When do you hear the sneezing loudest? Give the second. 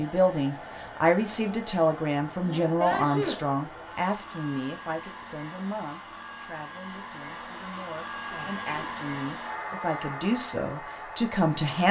3 s.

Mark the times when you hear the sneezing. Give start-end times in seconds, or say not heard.
2.6-3.5, 8.3-8.9.